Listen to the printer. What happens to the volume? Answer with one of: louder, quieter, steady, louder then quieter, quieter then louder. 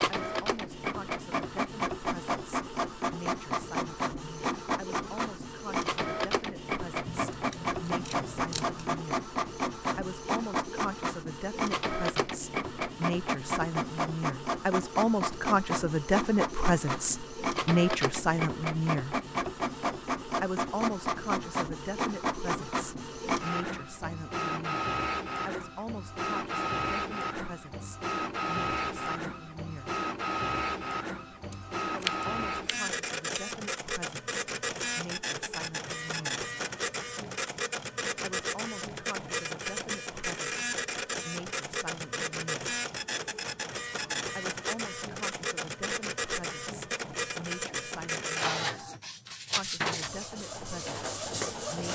steady.